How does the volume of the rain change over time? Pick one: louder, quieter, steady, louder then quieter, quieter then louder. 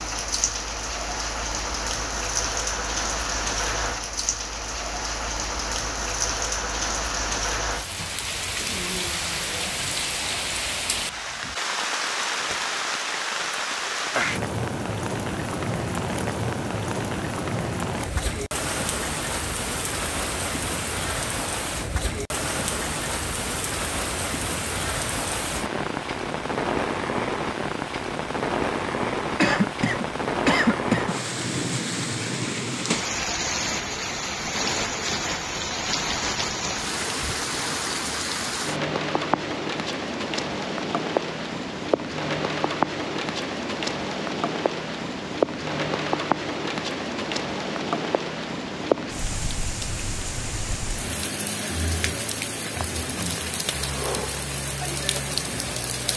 steady.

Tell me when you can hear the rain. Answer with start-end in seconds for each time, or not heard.
0.0-56.1.